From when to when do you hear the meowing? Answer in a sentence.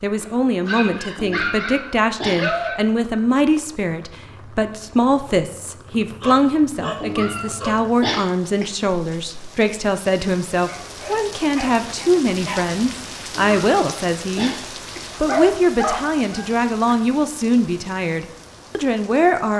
The meowing can be heard from 1.1 to 2.5 s, from 7.0 to 8.7 s and from 13.3 to 15.1 s.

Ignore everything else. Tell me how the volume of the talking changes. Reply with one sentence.
The loudness of the talking stays about the same.